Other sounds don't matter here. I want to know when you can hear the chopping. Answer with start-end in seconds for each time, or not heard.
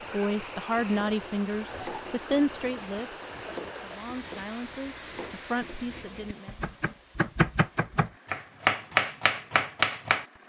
0.7-10.2.